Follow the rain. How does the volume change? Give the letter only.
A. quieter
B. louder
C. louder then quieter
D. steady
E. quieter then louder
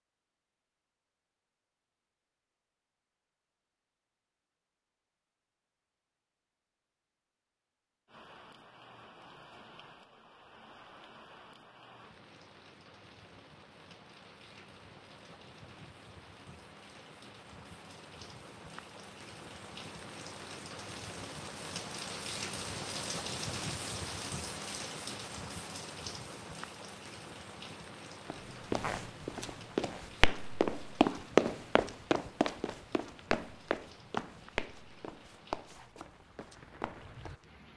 C.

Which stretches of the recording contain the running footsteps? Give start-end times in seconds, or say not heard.
28.3-37.5.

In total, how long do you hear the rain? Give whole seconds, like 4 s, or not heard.
30 s.